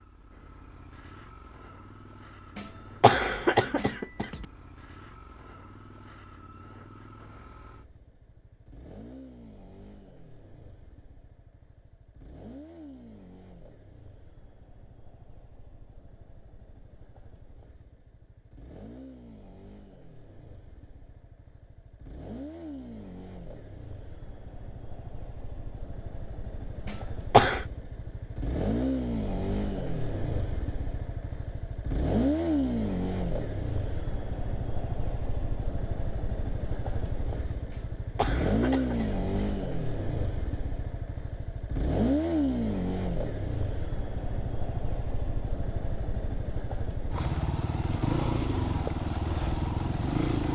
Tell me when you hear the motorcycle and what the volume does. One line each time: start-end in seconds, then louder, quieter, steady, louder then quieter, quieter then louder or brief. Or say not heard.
0.0-50.5 louder.